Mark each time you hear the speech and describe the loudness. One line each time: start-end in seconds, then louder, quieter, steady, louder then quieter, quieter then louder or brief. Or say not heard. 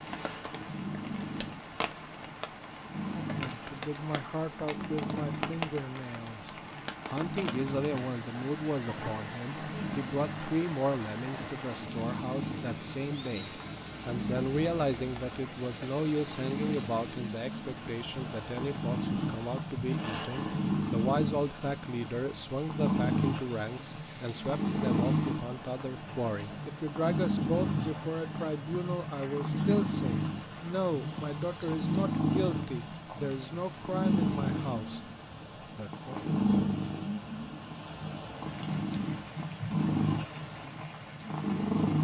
3.2-35.0 steady
35.8-36.2 brief.